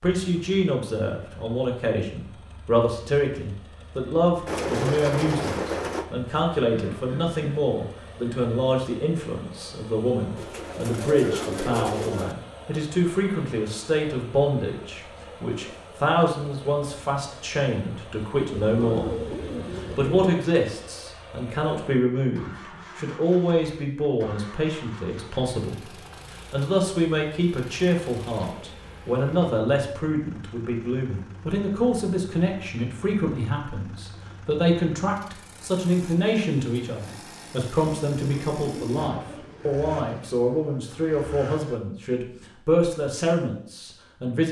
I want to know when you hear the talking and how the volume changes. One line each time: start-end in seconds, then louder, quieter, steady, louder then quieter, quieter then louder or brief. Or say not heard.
0.0-44.4 steady.